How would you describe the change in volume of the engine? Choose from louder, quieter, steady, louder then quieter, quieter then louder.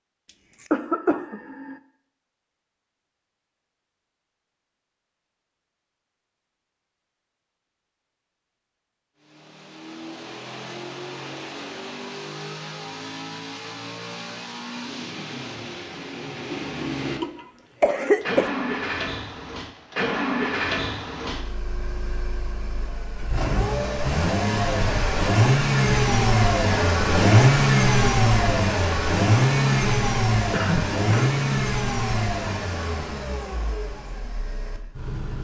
louder then quieter.